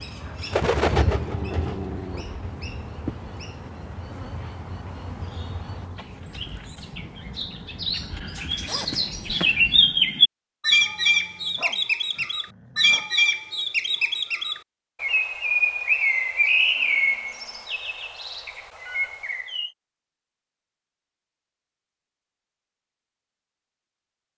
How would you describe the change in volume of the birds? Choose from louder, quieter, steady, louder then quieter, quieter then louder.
quieter then louder.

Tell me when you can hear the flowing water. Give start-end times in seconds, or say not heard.
not heard.